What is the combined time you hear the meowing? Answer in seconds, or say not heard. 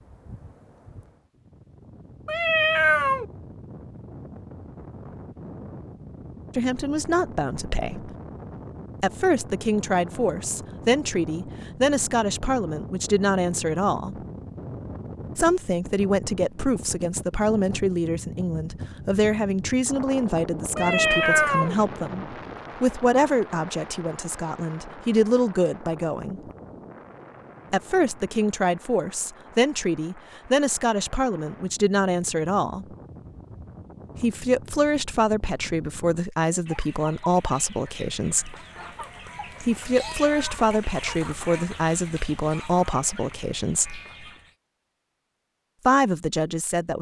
3 s.